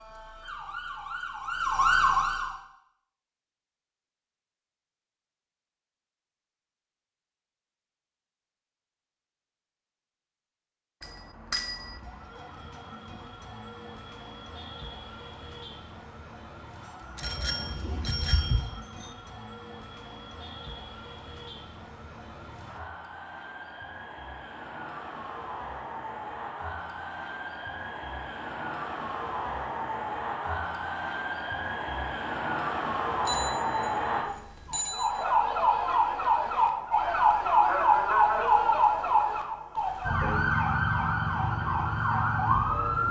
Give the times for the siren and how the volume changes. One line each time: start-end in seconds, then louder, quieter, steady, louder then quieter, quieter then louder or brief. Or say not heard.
0.0-2.5 brief
11.7-43.0 louder.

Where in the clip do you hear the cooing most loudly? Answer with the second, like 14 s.
18 s.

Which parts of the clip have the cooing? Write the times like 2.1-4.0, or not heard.
17.2-18.7.